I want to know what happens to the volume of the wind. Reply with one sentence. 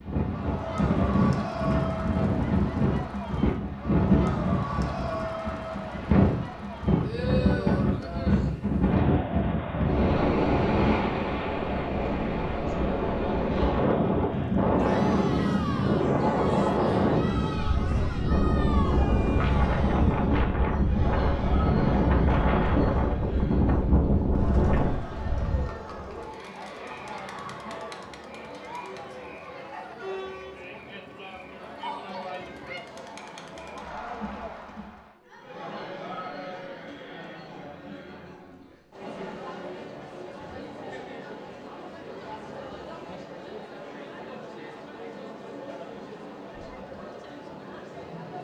The volume of the wind stays about the same.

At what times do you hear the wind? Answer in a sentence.
The wind can be heard from 0.0 to 25.7 s.